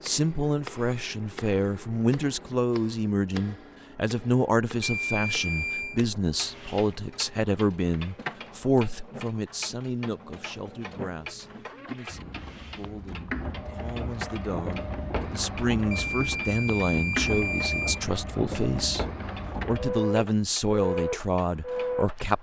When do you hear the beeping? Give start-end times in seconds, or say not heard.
4.8-6.0, 15.9-18.0.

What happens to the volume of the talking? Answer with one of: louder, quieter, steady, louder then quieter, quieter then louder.
quieter then louder.